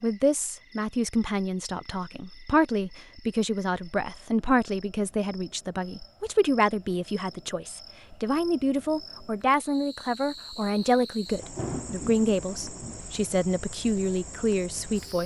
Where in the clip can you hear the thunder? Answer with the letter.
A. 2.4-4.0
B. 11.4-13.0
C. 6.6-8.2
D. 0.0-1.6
B.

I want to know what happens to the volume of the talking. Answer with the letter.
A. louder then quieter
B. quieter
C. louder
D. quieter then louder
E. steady
E.